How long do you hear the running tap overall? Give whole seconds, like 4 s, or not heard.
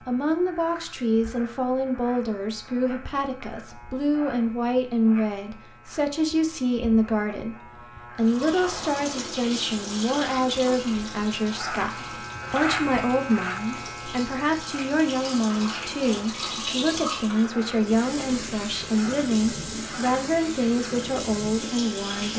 14 s.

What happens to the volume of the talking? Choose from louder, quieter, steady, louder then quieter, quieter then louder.
steady.